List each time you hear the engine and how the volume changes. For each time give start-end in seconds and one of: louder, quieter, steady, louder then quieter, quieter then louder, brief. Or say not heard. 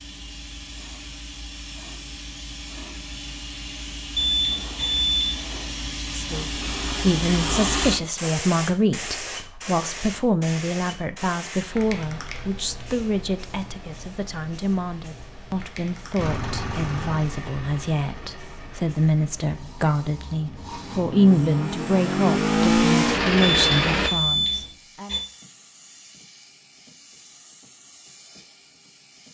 16.1-24.1 quieter then louder.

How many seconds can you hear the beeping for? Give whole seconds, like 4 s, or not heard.
3 s.